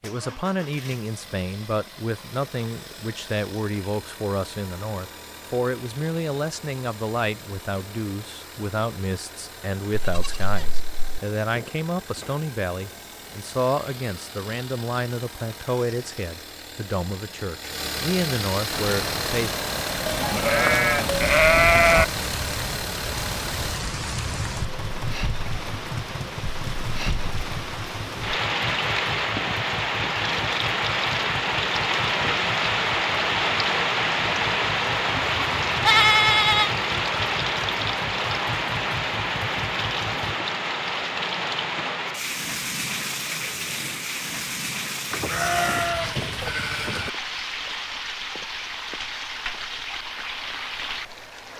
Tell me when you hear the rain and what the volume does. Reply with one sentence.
You can hear the rain from 18.6 to 51.5 s, getting louder then quieter.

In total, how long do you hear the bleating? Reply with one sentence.
You can hear the bleating for 7 seconds altogether.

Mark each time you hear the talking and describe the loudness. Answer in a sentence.
You can hear the talking from 0.0 to 19.5 s, at a steady volume.